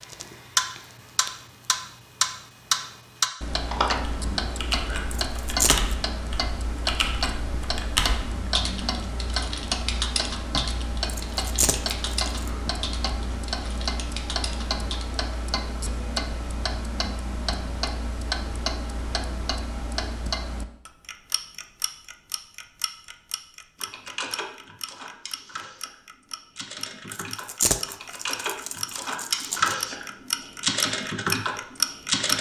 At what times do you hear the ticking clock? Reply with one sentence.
You can hear the ticking clock from 0.0 to 32.3 s.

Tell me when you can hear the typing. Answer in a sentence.
The typing can be heard from 3.6 to 15.1 s and from 23.8 to 32.3 s.